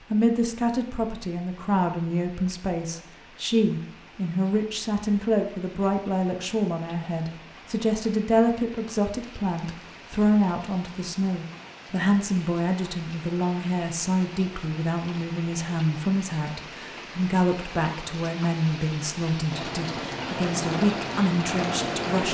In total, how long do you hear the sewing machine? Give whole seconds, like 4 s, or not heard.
2 s.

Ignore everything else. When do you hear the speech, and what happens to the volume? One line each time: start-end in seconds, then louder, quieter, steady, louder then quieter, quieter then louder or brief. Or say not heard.
0.1-22.2 steady.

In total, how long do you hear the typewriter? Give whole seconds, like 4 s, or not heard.
not heard.